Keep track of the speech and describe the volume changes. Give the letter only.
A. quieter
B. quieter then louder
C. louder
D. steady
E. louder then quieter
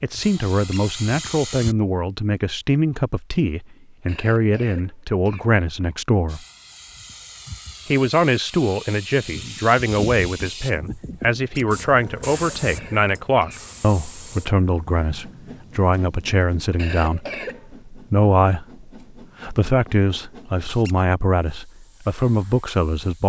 D.